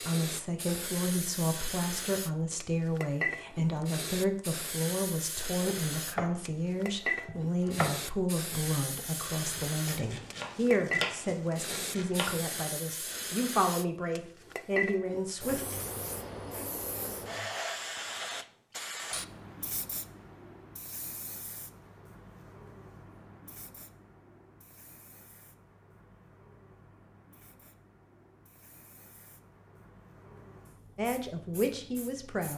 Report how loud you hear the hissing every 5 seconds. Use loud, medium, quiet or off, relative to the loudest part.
loud, loud, loud, loud, quiet, quiet, quiet.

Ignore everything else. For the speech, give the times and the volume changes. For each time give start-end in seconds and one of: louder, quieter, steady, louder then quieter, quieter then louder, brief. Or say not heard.
0.0-15.7 steady
30.9-32.5 brief.